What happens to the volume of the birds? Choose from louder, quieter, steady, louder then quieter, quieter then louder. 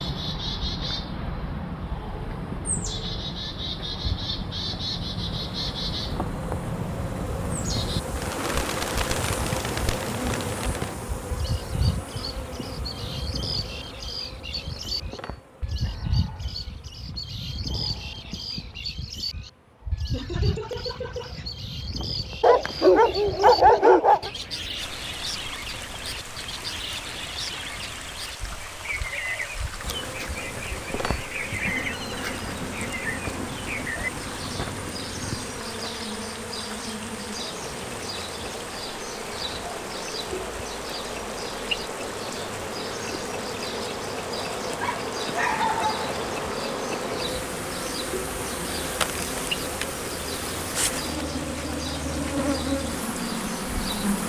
quieter.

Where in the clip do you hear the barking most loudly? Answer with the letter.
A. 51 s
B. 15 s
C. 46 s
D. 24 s
D.